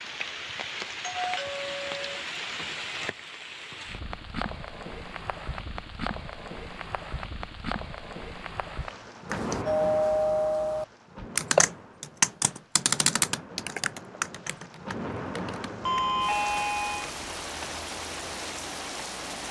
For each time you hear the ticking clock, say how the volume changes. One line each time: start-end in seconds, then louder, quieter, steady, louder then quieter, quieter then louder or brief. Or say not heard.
not heard.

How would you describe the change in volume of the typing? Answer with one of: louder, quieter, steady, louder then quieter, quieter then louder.
quieter.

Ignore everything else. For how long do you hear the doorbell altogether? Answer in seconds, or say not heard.
4 s.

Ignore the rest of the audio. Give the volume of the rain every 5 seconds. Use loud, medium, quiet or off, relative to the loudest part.
loud, loud, medium, loud.